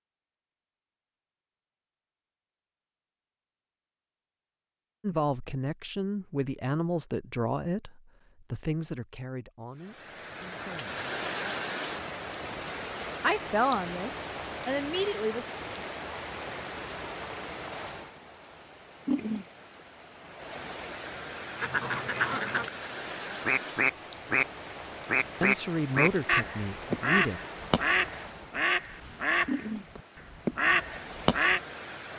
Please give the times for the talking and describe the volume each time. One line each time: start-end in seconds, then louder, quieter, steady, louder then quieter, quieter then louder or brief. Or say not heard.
5.0-11.1 quieter
13.2-15.5 brief
25.4-27.4 brief.